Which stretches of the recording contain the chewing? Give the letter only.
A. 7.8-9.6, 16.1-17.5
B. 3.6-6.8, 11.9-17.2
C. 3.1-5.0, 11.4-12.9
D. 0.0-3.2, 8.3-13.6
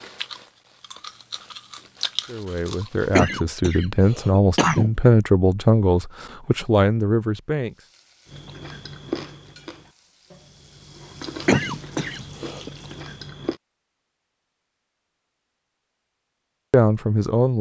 D.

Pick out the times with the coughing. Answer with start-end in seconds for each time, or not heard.
3.1-5.0, 11.4-12.9.